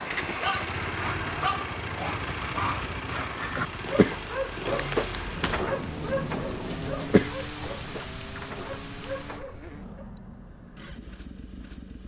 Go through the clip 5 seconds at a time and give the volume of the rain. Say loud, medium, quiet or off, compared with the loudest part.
loud, loud, off.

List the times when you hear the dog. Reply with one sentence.
The dog can be heard from 0.1 to 10.1 s.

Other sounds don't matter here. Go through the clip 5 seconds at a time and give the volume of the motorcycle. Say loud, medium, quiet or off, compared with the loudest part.
loud, medium, medium.